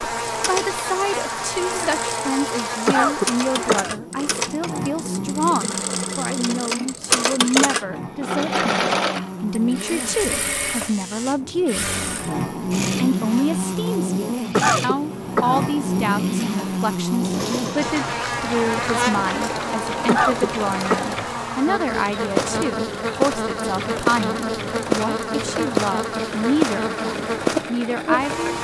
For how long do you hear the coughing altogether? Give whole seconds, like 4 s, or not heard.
3 s.